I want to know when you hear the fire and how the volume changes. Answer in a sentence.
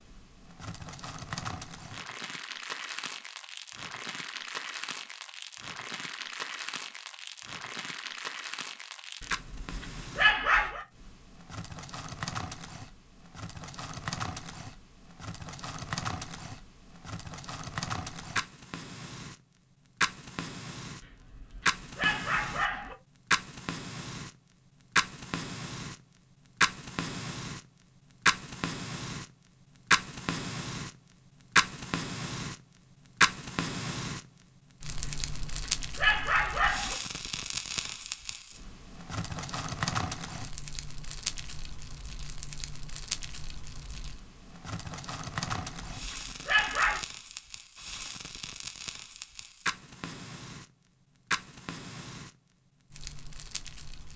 You can hear the fire from 0.0 to 54.1 s, getting louder then quieter.